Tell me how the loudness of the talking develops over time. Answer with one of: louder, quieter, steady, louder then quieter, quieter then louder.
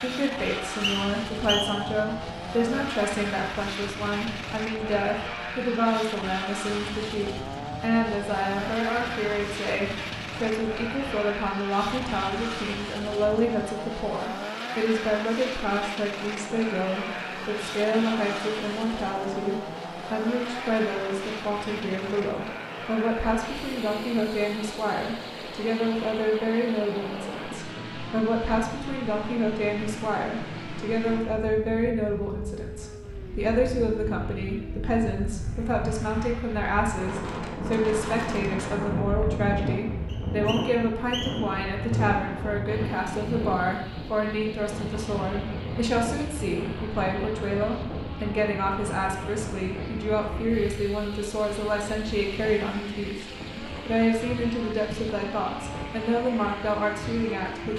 steady.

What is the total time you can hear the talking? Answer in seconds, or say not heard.
58 s.